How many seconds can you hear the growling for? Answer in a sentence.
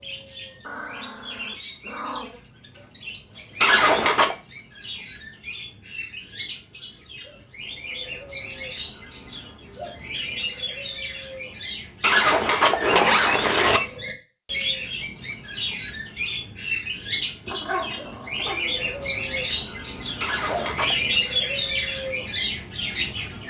You can hear the growling for 4 seconds altogether.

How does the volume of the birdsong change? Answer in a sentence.
The loudness of the birdsong goes up.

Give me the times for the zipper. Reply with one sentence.
The zipper can be heard from 3.6 to 4.3 s, from 12.0 to 13.8 s and from 20.2 to 21.0 s.